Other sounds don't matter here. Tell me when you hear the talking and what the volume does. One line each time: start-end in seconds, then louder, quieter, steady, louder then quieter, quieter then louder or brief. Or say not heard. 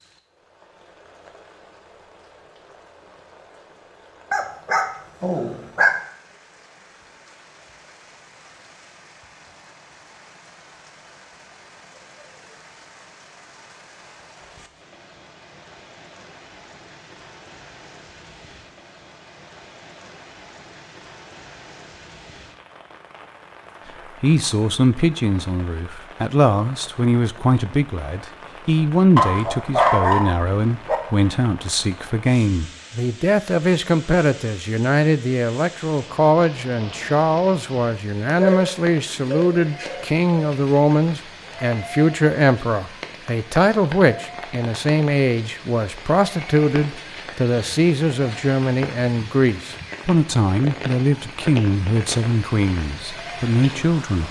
24.2-54.2 steady.